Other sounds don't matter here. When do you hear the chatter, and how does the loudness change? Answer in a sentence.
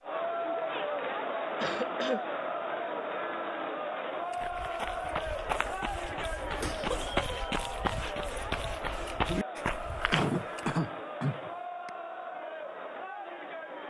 You can hear the chatter from 0.0 to 13.8 s, getting quieter.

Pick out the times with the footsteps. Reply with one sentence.
The footsteps can be heard from 4.3 to 10.8 s.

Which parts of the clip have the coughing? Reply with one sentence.
The coughing can be heard from 1.6 to 2.2 s, from 6.6 to 7.2 s and from 9.6 to 11.9 s.